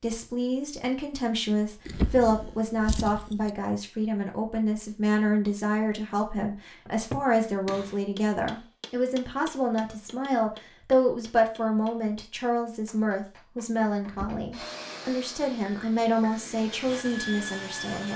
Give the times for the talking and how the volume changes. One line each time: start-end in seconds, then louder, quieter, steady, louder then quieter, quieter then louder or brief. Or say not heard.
0.0-18.1 steady.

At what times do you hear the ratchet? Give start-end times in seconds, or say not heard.
not heard.